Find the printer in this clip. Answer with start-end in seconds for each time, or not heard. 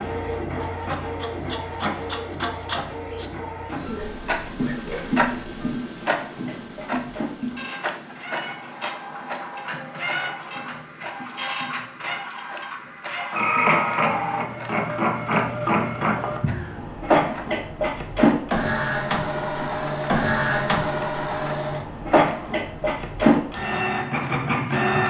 0.0-25.0.